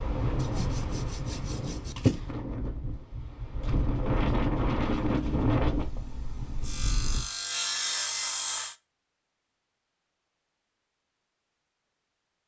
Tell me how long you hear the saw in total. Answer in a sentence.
The saw can be heard for 4 seconds in total.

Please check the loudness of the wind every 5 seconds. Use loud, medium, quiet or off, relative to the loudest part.
loud, loud, off.